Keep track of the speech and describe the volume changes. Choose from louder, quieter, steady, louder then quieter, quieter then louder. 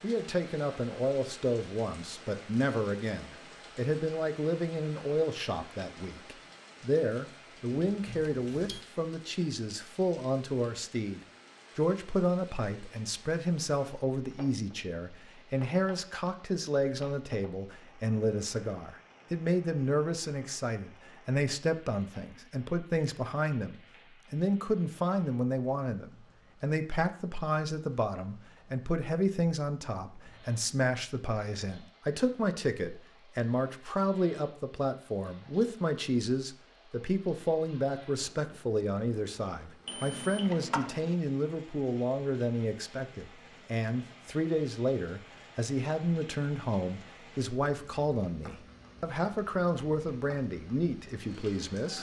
steady.